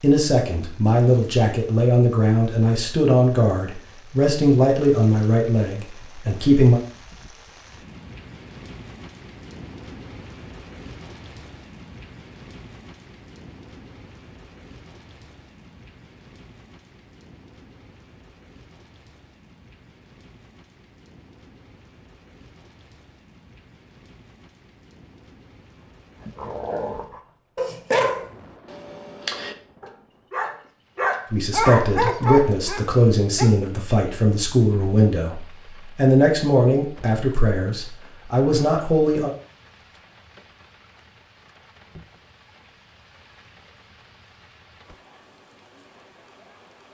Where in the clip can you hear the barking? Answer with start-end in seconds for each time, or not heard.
26.2-33.5.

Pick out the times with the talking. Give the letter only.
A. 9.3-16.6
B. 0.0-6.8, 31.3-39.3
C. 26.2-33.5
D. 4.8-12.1
B.